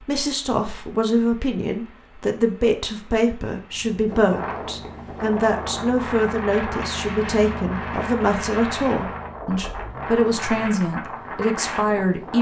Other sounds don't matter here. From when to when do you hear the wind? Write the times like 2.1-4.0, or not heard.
4.0-12.3.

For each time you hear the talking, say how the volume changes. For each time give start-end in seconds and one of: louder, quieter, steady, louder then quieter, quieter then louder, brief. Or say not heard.
0.0-12.3 steady.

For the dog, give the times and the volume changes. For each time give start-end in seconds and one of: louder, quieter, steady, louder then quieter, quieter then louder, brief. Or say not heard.
not heard.